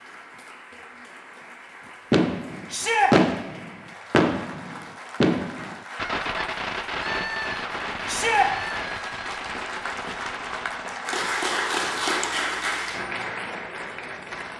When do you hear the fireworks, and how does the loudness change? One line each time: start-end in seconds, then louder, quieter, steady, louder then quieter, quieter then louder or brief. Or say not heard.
2.1-10.9 quieter.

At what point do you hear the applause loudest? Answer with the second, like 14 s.
12 s.